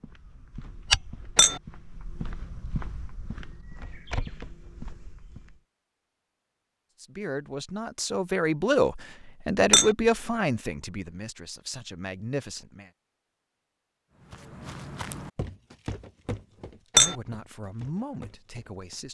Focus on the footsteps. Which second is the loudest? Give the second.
1 s.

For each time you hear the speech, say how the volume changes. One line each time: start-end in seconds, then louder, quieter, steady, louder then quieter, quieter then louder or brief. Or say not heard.
7.0-12.9 louder then quieter
16.9-19.0 brief.